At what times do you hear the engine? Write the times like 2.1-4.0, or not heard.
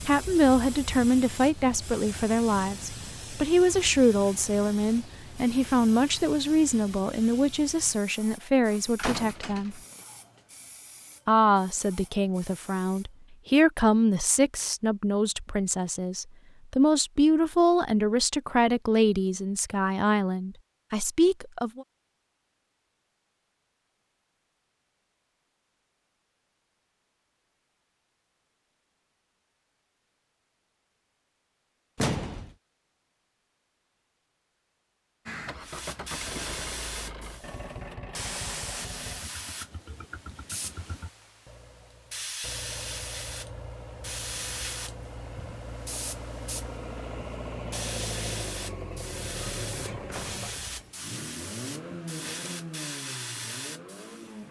35.2-54.4.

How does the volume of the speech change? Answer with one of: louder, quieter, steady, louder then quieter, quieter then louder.
steady.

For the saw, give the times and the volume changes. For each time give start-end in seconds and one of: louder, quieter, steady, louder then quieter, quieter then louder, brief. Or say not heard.
not heard.